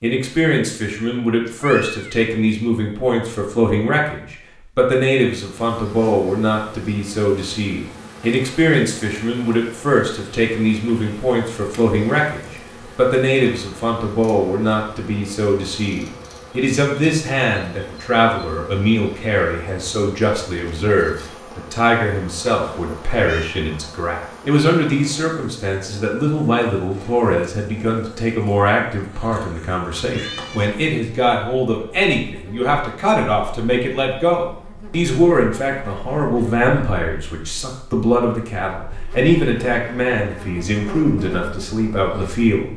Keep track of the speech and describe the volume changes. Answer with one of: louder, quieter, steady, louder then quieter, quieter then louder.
steady.